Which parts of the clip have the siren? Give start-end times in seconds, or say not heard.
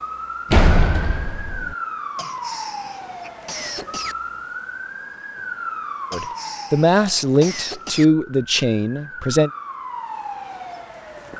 0.0-11.3.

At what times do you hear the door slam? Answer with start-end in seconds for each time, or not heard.
0.5-1.8.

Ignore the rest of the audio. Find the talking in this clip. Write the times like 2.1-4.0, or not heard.
6.1-9.5.